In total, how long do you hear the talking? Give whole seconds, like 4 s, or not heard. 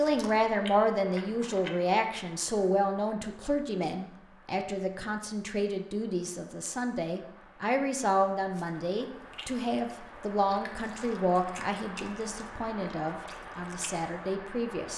15 s.